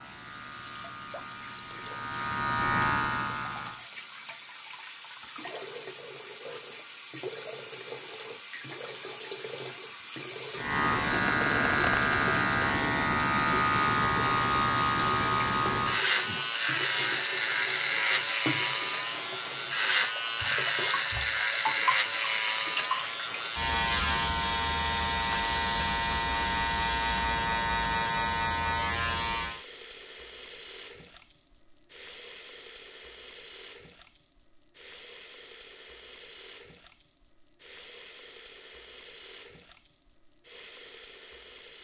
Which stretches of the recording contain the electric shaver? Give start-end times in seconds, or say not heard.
0.0-3.9, 10.6-29.6.